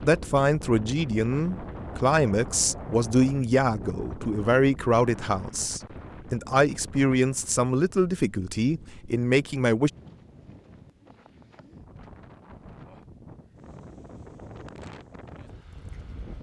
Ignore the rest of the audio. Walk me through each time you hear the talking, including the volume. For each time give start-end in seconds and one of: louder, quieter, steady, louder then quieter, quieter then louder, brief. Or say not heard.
0.0-9.9 steady.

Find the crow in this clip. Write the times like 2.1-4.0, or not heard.
not heard.